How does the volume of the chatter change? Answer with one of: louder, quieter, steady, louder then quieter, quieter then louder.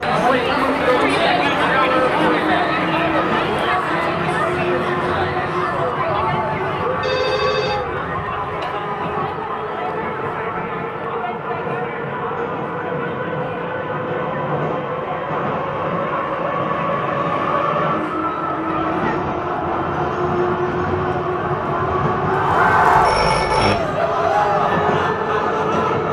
quieter then louder.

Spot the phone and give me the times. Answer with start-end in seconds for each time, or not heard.
7.0-8.7, 22.9-23.8.